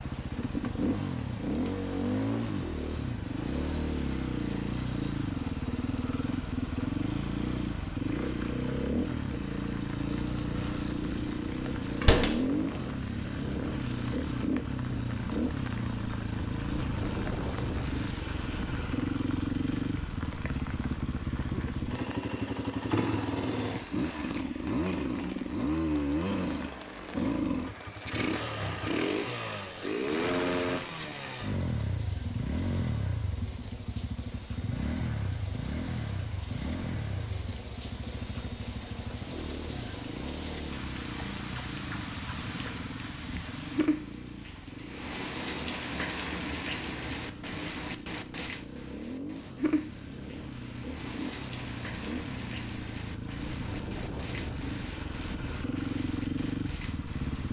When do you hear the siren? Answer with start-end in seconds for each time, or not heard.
not heard.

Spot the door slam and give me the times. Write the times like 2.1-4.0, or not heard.
12.0-12.4.